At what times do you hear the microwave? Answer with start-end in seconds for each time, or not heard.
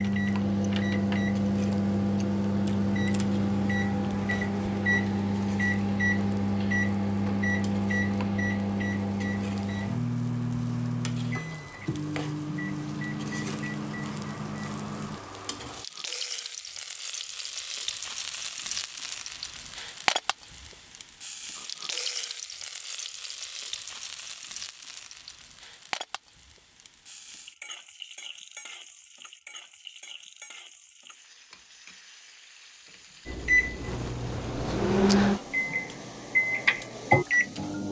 0.0-15.2, 33.2-37.8.